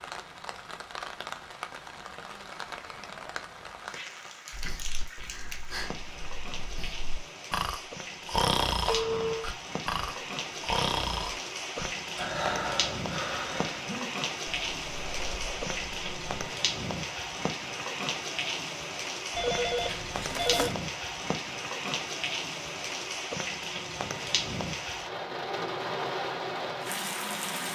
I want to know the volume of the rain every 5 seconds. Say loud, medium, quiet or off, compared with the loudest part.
medium, medium, loud, loud, loud, loud.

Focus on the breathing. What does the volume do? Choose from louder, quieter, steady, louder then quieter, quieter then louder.
louder then quieter.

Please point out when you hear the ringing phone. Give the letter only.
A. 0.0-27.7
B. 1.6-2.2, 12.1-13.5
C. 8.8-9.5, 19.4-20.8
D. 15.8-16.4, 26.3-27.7
C.